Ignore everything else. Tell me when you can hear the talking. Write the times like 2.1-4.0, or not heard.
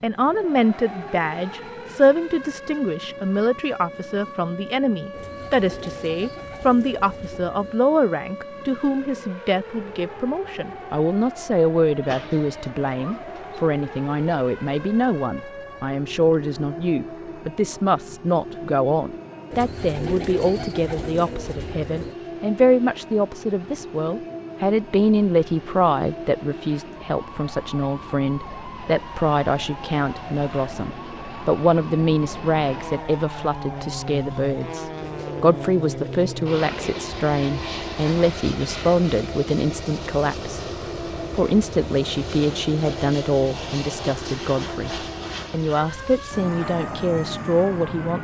0.0-48.1.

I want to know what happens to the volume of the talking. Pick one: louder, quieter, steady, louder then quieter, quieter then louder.
steady.